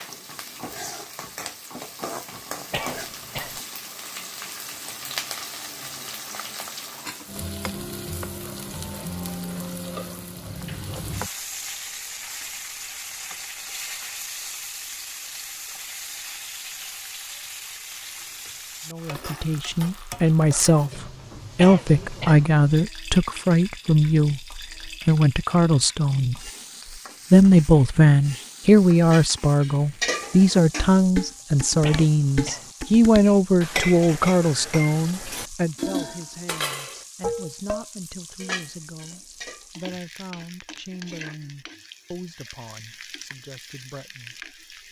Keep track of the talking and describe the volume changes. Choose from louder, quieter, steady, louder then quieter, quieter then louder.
quieter.